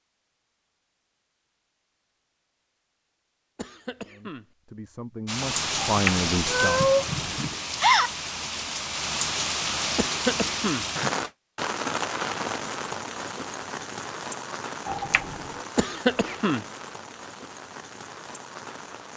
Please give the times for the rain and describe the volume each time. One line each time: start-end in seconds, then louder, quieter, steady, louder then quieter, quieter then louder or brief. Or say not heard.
5.2-19.1 quieter.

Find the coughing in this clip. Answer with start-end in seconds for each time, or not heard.
3.5-4.5, 9.9-10.8, 15.8-16.6.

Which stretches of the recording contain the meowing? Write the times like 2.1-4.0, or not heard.
5.8-7.5, 14.8-15.7.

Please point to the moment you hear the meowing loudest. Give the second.
7 s.